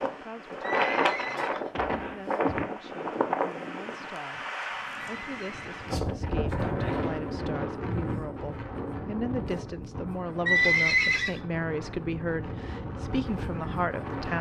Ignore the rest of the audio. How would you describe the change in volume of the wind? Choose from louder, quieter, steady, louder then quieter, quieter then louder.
quieter.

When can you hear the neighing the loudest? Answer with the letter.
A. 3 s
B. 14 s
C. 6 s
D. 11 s
D.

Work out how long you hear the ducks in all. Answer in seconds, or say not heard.
not heard.